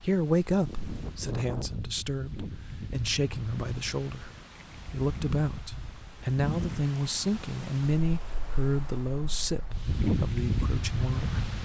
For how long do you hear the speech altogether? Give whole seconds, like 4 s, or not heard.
11 s.